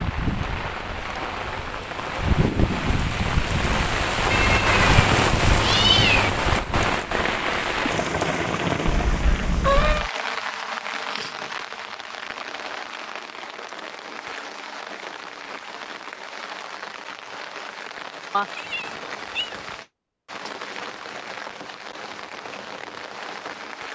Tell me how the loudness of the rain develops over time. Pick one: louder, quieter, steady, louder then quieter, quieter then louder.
quieter.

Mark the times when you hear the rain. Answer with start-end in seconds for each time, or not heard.
0.0-23.8.